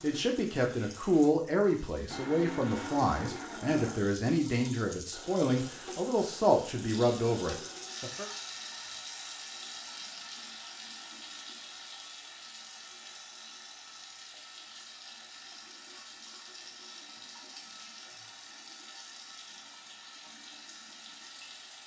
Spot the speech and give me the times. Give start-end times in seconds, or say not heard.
0.0-8.3.